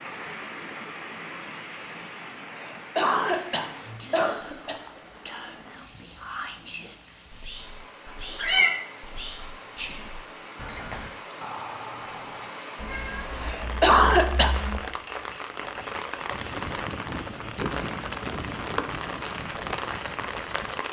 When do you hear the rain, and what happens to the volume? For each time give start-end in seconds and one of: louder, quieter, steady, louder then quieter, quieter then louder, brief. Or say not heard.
0.0-20.8 quieter then louder.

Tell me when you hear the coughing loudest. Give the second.
14 s.